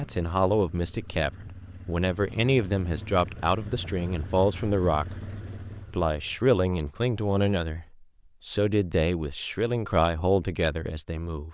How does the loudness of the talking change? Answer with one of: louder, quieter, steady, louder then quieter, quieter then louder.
steady.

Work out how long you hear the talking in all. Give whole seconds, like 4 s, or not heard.
11 s.